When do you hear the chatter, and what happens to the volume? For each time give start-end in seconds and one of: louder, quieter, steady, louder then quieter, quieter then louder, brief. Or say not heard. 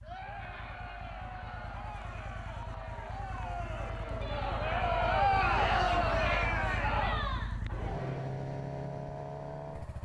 0.0-8.4 louder then quieter.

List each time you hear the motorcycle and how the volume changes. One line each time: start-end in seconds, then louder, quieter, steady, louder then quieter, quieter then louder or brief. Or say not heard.
0.0-10.0 louder.